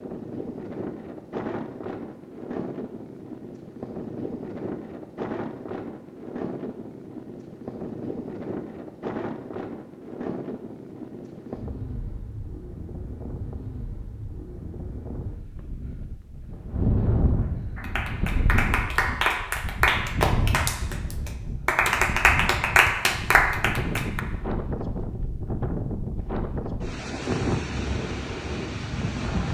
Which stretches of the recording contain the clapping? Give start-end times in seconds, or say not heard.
17.8-24.2.